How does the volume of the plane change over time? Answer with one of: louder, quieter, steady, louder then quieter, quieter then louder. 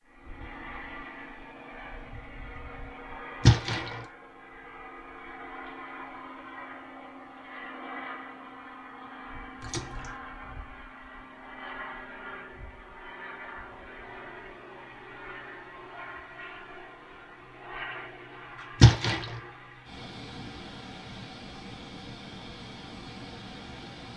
steady.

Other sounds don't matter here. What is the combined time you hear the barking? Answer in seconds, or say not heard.
not heard.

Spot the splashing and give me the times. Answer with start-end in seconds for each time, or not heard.
3.5-3.9, 9.6-10.1, 18.8-19.2.